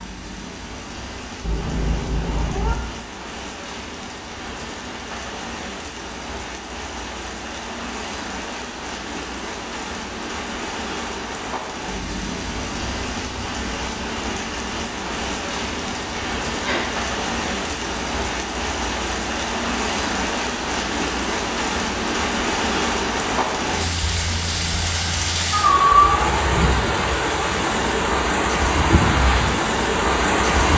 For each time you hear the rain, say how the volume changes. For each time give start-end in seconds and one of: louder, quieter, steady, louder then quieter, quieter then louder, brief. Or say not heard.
0.0-30.7 louder.